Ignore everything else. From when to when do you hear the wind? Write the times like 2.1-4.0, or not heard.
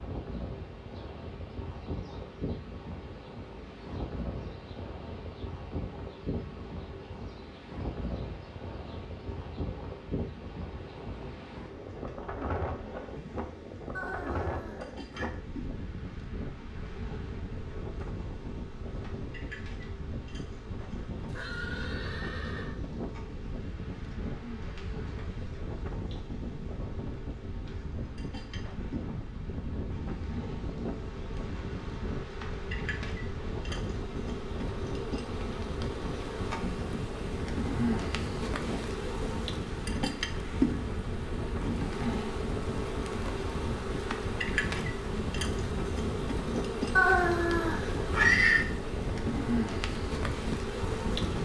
0.0-51.3.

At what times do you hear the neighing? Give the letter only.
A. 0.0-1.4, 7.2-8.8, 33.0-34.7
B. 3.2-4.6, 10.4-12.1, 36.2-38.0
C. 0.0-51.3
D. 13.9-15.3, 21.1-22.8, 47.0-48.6
D.